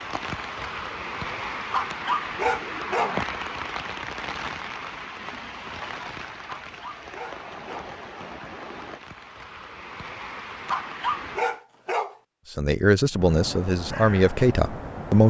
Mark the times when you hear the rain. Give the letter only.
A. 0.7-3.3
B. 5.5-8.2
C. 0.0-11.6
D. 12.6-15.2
C.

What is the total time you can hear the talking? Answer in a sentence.
You can hear the talking for 3 seconds altogether.